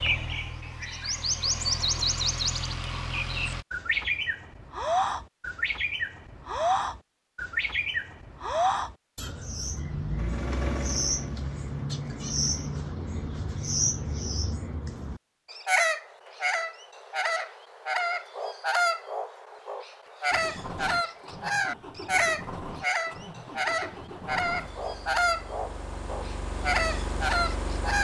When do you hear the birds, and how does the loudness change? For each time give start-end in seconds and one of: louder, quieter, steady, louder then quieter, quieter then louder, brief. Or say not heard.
0.0-28.0 steady.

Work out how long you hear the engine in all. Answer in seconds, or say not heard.
13 s.